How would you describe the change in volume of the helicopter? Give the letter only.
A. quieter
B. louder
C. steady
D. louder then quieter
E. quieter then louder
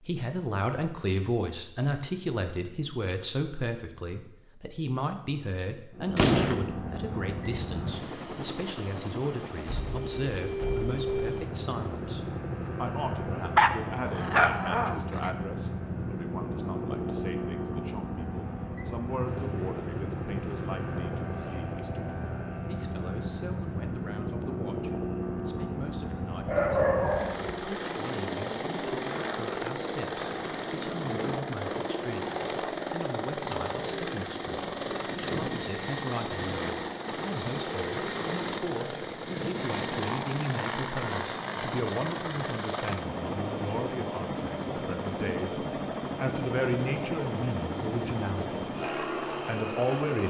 C.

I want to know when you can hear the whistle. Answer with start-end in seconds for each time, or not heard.
not heard.